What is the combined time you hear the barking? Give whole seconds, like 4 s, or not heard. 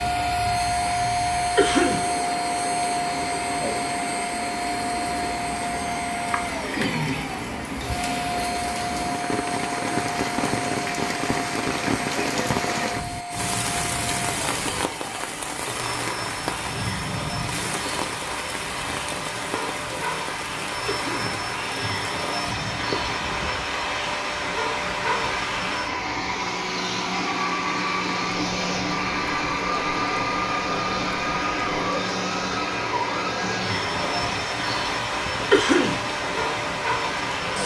not heard.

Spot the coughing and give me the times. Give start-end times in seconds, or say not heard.
1.6-2.1, 20.9-21.3, 35.5-36.0.